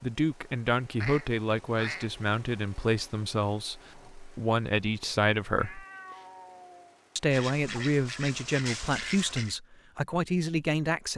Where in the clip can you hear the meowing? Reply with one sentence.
You can hear the meowing from 5.5 to 7.0 s.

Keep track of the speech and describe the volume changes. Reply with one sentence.
The loudness of the speech stays about the same.